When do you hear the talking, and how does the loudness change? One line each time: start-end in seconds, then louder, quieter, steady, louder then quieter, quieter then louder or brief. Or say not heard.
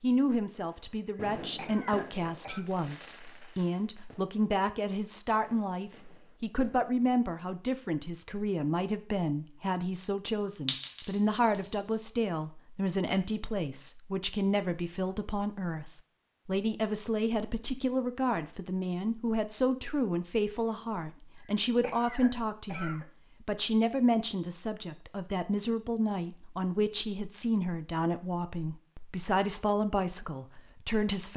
0.0-31.3 steady.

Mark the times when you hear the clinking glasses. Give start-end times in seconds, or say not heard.
10.7-12.1.